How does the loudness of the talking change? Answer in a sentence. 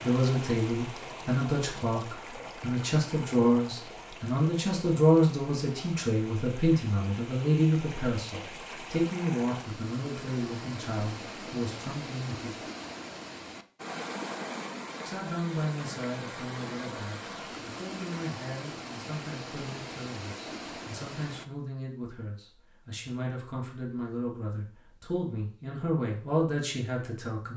The loudness of the talking goes down, then up.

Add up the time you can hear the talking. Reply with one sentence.
The talking can be heard for 25 seconds in total.